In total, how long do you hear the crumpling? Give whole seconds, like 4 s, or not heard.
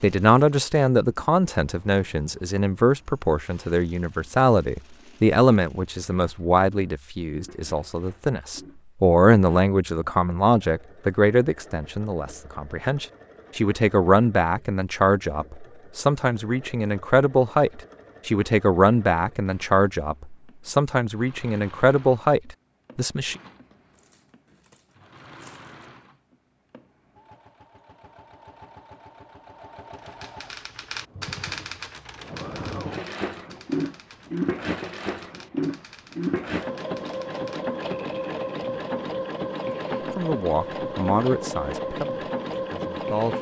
2 s.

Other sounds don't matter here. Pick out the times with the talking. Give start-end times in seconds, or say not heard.
0.0-23.4, 40.1-43.3.